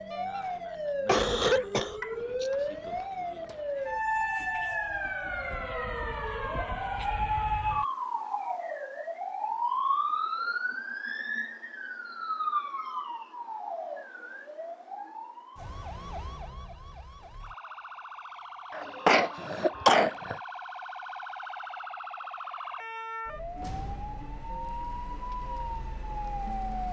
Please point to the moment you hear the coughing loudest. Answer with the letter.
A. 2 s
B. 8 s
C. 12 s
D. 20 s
D.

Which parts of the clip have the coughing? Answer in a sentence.
You can hear the coughing from 1.1 to 3.0 s and from 18.7 to 20.4 s.